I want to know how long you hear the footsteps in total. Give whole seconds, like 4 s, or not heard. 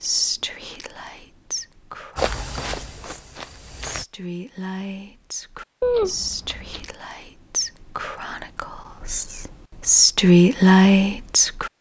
2 s.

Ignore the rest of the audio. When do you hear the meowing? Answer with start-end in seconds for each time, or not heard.
5.8-6.9.